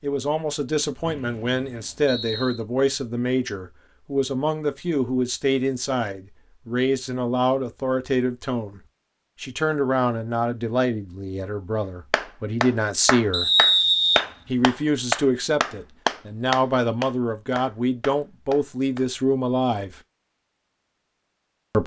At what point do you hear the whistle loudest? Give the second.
14 s.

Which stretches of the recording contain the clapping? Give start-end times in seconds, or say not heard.
12.1-19.1.